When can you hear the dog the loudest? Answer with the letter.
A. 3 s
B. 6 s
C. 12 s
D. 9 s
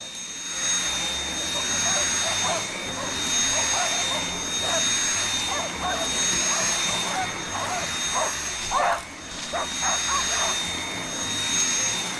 D.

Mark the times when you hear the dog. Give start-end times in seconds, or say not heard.
1.5-10.6.